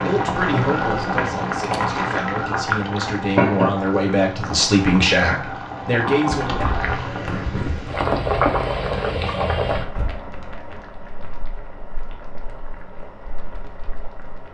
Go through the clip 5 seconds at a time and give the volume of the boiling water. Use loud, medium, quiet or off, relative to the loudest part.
loud, loud, quiet.